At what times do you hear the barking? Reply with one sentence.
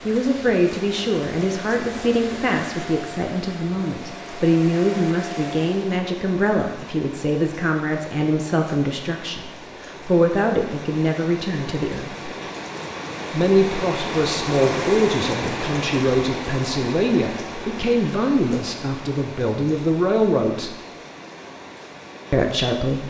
You can't hear the barking here.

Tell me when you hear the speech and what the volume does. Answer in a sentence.
You can hear the speech from 0.1 to 12.3 s, at a steady volume; from 13.3 to 20.8 s, at a steady volume; and briefly from 22.3 to 23.0 s.